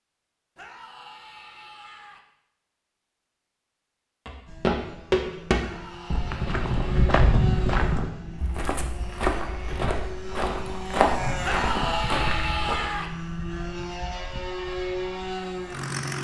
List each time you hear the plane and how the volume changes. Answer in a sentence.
You can hear the plane from 4.5 to 16.1 s, getting louder.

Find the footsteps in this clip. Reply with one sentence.
The footsteps can be heard from 4.2 to 12.9 s.